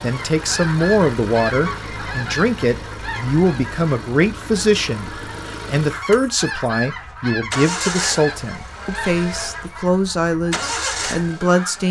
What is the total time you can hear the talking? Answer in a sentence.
The talking can be heard for 12 seconds in total.